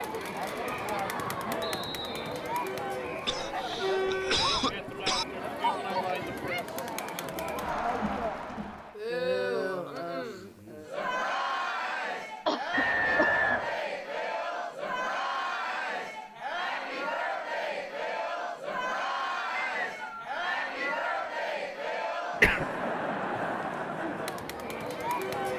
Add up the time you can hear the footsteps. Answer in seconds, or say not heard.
not heard.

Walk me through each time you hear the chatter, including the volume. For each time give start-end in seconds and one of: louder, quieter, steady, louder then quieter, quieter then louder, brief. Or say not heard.
0.0-25.5 steady.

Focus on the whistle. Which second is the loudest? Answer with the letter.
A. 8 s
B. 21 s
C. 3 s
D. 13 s
D.